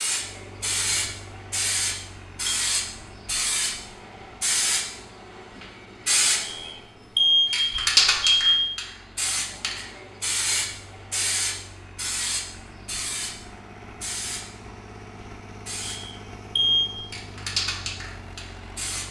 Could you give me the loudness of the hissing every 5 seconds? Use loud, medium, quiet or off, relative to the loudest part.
loud, loud, medium, medium.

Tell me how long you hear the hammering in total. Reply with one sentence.
You can't hear the hammering here.